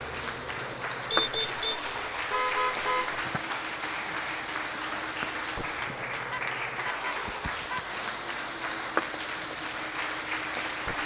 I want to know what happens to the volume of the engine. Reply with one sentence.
The loudness of the engine stays about the same.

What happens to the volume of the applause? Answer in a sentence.
The loudness of the applause stays about the same.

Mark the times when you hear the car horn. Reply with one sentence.
You can hear the car horn from 1.1 to 3.2 s and from 6.3 to 8.0 s.